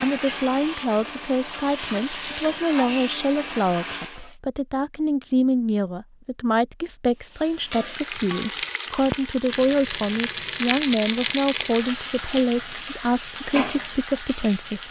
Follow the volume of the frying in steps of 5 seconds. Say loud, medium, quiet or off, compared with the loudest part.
medium, loud, loud.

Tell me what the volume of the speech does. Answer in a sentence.
The loudness of the speech stays about the same.